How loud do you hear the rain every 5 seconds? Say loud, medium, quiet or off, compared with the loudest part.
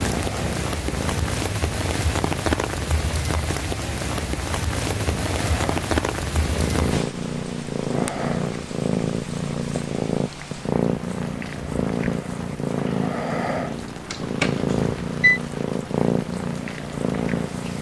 loud, loud, quiet, quiet.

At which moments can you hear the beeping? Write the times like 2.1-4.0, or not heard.
14.1-15.4.